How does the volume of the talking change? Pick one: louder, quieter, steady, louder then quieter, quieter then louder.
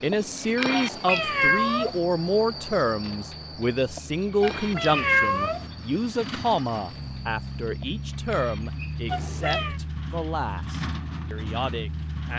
quieter.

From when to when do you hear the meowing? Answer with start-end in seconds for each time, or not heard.
0.7-2.0, 4.4-5.7, 9.1-9.8.